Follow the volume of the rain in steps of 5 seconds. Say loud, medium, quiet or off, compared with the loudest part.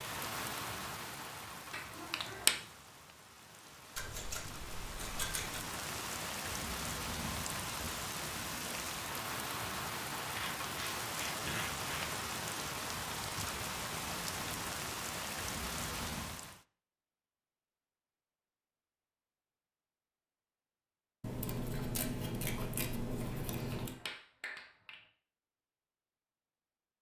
medium, loud, loud, loud, off, off.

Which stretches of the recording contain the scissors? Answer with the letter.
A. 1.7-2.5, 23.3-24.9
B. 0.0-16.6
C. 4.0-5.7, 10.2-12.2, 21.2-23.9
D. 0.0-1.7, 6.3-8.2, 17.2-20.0
C.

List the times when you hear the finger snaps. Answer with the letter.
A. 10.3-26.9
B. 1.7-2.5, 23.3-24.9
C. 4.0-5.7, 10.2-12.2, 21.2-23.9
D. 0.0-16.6
B.